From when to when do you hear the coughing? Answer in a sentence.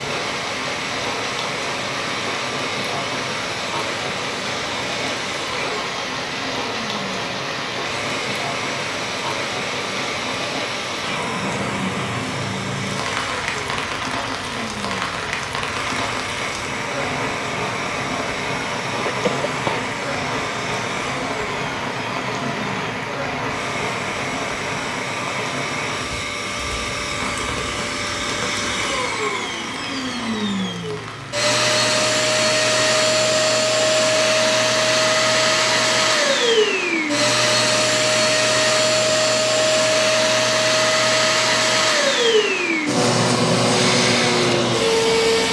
You can hear the coughing from 18.9 to 19.9 s.